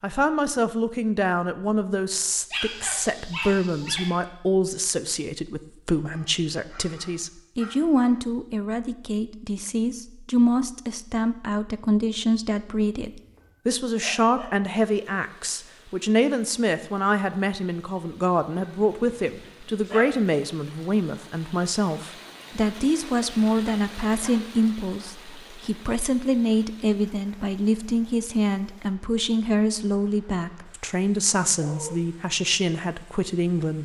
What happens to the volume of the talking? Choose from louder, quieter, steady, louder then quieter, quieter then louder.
steady.